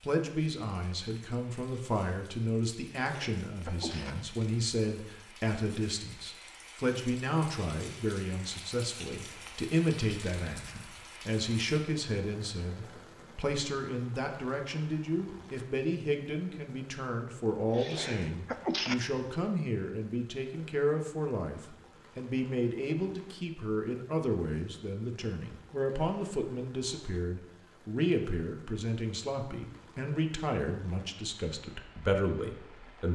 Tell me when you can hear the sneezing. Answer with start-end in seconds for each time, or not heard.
3.0-4.2, 17.3-18.9.